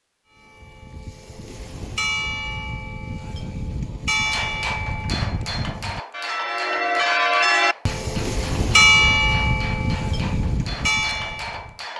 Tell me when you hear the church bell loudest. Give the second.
9 s.